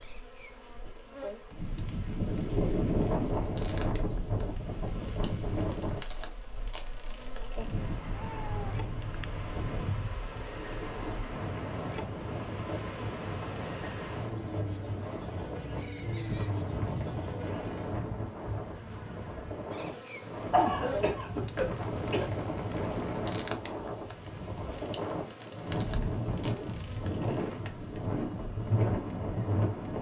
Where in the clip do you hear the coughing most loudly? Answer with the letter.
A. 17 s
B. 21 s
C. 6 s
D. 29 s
B.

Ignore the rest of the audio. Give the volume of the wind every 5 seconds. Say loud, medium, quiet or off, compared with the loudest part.
loud, medium, medium, medium, loud, loud.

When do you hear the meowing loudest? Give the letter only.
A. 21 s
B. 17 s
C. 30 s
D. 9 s
B.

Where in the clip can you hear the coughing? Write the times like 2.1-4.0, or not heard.
20.5-22.2.